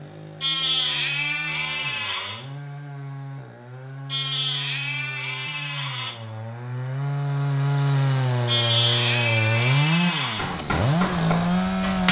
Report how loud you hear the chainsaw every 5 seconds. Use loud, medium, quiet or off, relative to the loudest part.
quiet, loud, loud.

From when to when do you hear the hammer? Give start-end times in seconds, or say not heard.
10.3-12.0.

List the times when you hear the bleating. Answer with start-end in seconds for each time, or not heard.
0.4-2.5, 4.0-6.2, 8.4-10.5.